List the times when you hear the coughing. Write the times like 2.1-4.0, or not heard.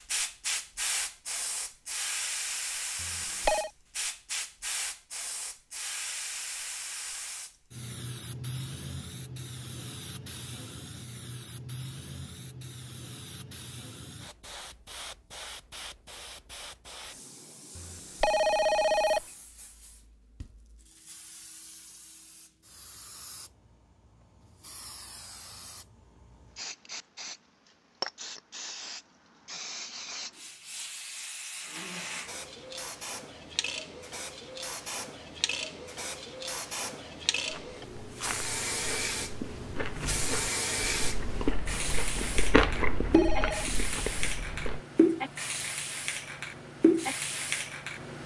not heard.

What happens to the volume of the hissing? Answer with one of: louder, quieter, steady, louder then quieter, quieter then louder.
quieter then louder.